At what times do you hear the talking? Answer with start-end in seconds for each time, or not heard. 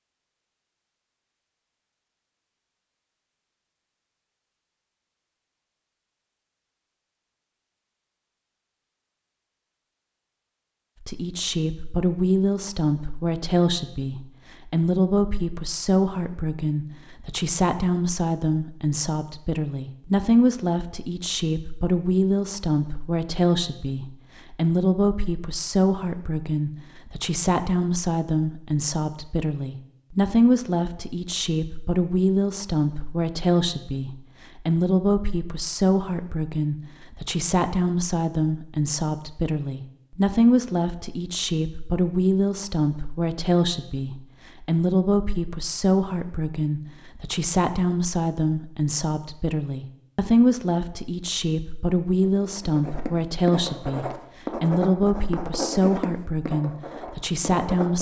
11.0-57.9.